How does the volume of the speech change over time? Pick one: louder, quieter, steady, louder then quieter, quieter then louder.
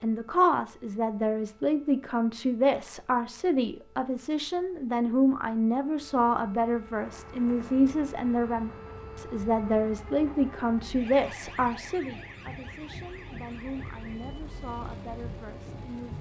quieter.